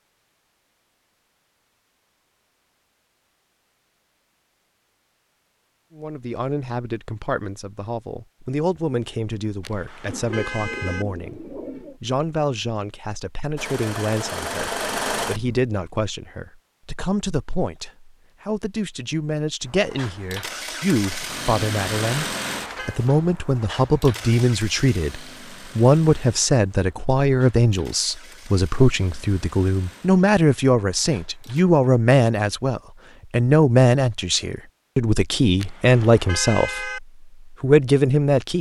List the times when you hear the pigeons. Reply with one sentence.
The pigeons can be heard from 10.1 to 12.0 s.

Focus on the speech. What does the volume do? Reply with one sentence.
The volume of the speech goes up.